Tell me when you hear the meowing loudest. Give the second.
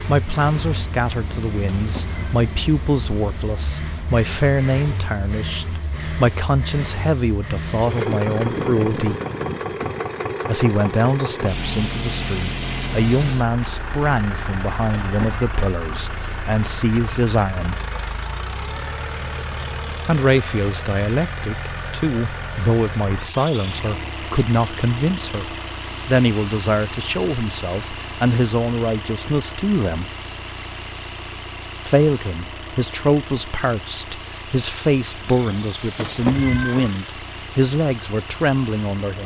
36 s.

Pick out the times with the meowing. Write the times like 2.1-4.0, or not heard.
1.8-2.4, 15.0-15.4, 36.0-37.0.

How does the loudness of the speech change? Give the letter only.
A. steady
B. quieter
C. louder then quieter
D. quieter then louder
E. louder
A.